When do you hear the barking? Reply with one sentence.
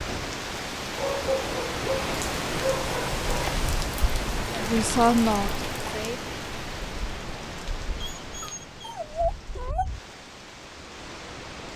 You can hear the barking from 0.9 to 3.6 s and from 8.0 to 9.9 s.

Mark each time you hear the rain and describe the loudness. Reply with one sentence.
The rain can be heard from 0.0 to 11.7 s, getting quieter.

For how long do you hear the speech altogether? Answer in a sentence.
The speech can be heard for 2 seconds in total.